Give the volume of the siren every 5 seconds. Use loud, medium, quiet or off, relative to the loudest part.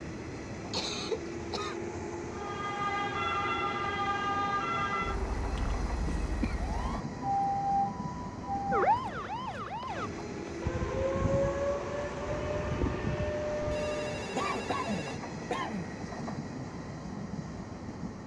loud, loud, loud, off.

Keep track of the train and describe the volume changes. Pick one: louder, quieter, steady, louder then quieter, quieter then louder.
steady.